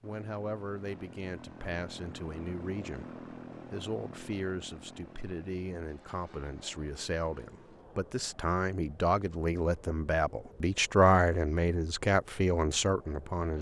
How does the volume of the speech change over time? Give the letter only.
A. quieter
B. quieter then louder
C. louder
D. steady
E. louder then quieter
C.